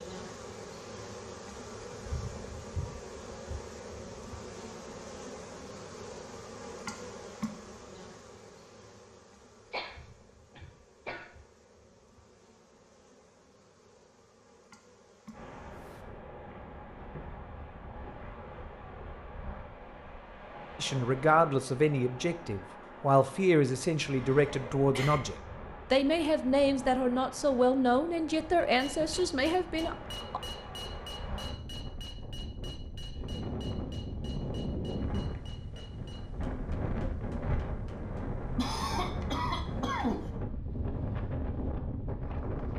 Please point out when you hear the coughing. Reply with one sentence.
You can hear the coughing from 9.7 to 11.3 s, from 24.1 to 25.2 s and from 38.5 to 40.3 s.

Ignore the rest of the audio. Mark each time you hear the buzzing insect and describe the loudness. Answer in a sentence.
The buzzing insect can be heard from 0.0 to 16.1 s, getting quieter.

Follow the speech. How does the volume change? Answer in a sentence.
The volume of the speech stays about the same.